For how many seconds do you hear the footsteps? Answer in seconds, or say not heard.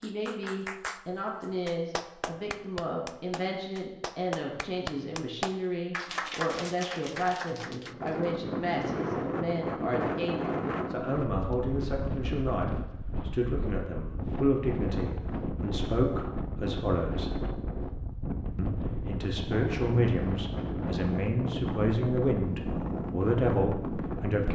not heard.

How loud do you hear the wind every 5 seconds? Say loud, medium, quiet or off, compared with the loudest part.
off, loud, loud, loud, loud.